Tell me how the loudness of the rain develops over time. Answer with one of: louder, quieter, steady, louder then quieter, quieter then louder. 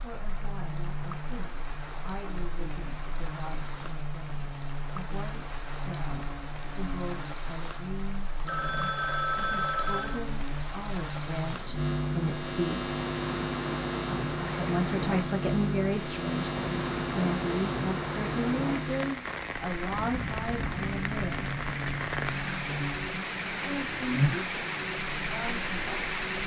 louder.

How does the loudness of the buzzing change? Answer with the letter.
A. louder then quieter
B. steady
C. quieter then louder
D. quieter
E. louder
E.